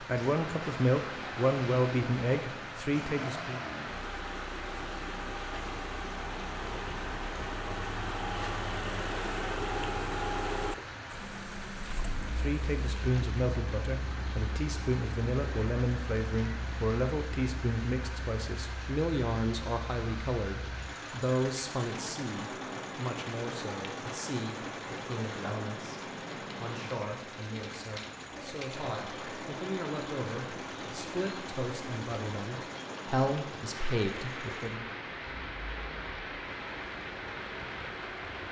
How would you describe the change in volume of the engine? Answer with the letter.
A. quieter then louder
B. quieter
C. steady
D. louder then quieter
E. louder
B.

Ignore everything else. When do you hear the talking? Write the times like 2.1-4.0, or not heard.
0.0-3.6, 12.3-35.0.